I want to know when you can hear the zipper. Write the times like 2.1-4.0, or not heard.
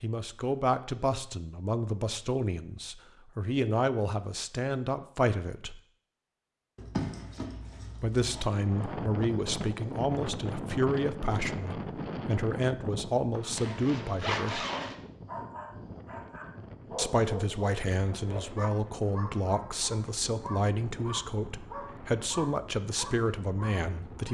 6.8-8.4, 13.3-14.9.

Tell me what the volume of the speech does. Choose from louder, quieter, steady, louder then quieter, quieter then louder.
steady.